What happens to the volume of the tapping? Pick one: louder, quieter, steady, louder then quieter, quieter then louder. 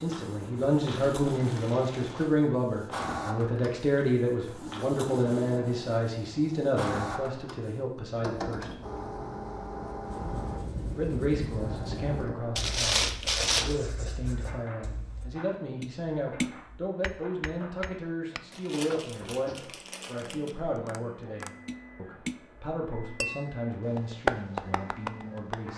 quieter then louder.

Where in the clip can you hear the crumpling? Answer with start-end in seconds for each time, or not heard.
0.9-2.3, 12.6-13.8, 18.5-20.6.